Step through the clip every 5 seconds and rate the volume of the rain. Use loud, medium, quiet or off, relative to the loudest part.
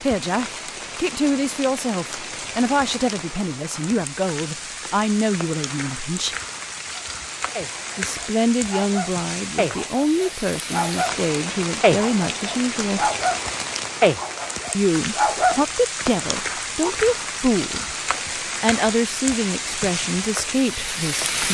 medium, medium, loud, loud, loud.